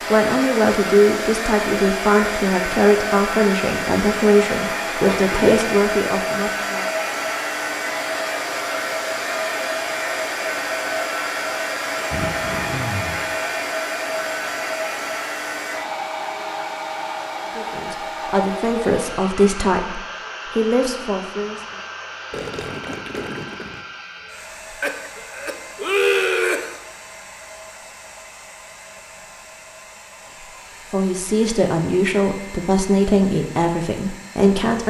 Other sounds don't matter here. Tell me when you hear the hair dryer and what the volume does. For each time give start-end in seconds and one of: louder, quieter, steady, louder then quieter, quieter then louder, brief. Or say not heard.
0.0-34.8 quieter.